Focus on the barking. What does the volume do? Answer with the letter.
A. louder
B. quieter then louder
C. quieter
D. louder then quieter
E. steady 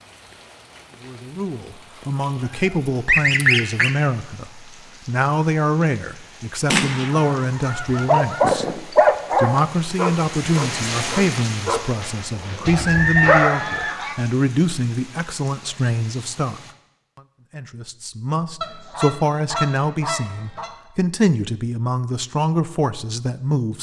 C.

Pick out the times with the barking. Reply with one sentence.
You can hear the barking from 8.1 to 13.7 s.